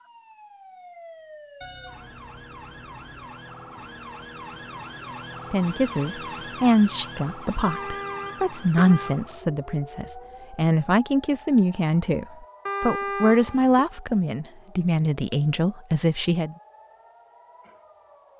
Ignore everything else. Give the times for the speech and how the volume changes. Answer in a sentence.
The speech can be heard from 5.5 to 16.6 s, at a steady volume.